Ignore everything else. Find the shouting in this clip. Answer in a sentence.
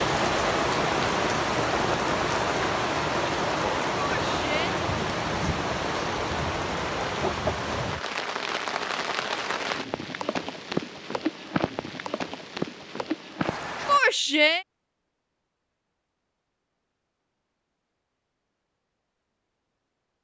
You can hear the shouting from 4.0 to 4.7 s and from 13.8 to 14.7 s.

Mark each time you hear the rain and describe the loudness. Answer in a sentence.
You can hear the rain from 0.0 to 14.0 s, getting quieter.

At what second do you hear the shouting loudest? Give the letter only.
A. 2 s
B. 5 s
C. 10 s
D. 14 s
D.